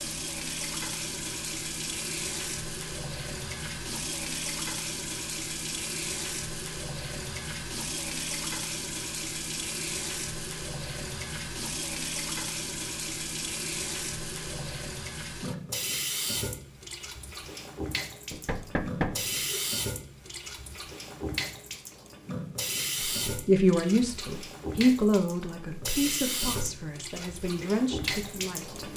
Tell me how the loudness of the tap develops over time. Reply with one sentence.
The loudness of the tap stays about the same.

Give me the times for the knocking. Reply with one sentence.
The knocking can be heard from 18.3 to 19.6 s.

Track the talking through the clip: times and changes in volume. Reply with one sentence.
You can hear the talking from 23.0 to 28.8 s, getting quieter then louder.